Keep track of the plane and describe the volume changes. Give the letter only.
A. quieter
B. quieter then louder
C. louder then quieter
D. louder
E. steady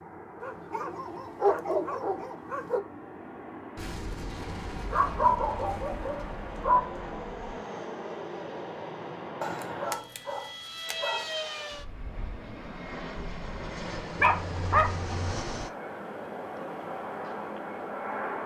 D.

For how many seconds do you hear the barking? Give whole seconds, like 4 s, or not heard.
7 s.